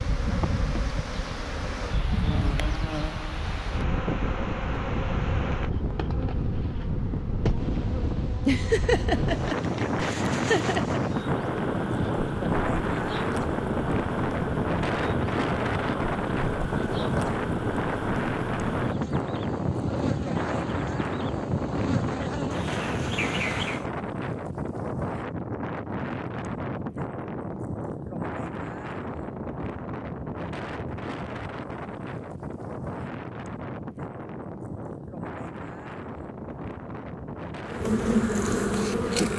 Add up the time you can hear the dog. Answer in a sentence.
The dog can't be heard in this clip.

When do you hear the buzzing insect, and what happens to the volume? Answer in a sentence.
You can hear the buzzing insect from 0.0 to 23.9 s, at a steady volume; and briefly from 37.6 to 39.3 s.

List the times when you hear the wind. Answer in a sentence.
You can hear the wind from 0.0 to 39.3 s.